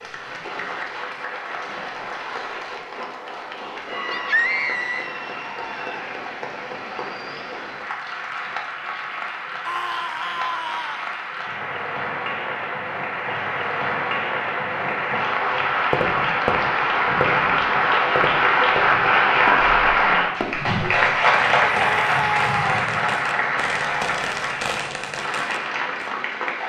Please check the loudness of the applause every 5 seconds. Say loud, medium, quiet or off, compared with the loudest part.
quiet, quiet, medium, loud, loud, medium.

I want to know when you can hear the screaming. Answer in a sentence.
The screaming can be heard from 4.1 to 5.1 s, from 9.6 to 11.2 s and from 21.9 to 22.8 s.